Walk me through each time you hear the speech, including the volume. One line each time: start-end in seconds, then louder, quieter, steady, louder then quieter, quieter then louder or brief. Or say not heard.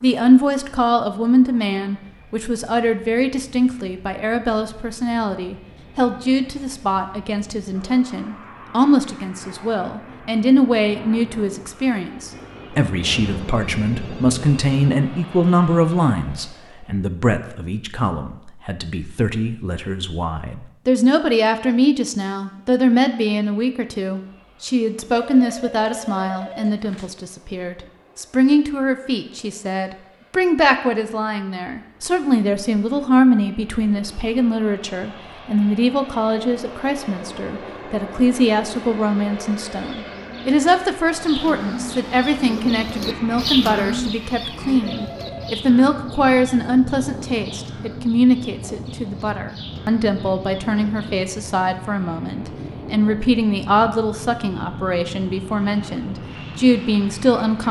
0.0-57.6 steady.